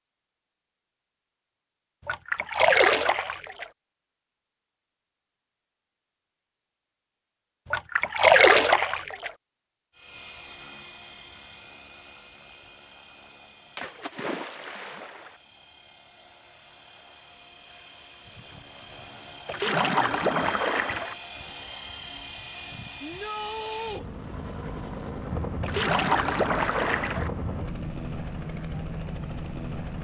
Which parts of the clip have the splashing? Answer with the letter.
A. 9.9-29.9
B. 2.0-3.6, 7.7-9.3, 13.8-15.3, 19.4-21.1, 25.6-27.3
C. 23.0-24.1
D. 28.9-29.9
B.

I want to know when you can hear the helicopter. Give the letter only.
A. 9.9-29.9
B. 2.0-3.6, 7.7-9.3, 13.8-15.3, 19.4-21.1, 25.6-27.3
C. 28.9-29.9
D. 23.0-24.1
A.